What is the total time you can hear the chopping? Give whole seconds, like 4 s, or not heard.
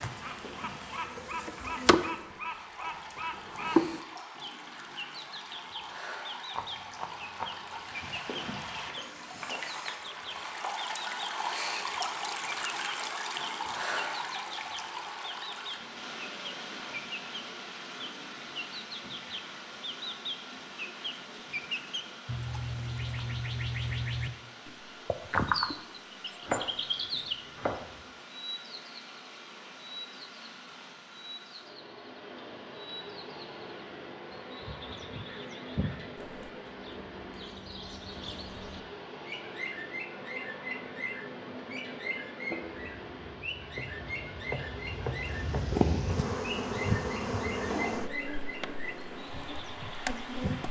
5 s.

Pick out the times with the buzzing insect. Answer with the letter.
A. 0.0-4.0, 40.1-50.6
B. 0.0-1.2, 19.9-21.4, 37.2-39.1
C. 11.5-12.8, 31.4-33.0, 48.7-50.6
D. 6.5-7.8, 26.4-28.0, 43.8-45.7
A.